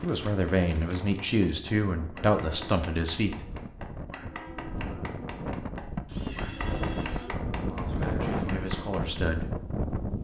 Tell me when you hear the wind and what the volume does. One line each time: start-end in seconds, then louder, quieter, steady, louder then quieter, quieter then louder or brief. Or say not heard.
0.0-10.1 louder.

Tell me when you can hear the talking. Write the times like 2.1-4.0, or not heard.
0.0-3.4, 7.7-9.6.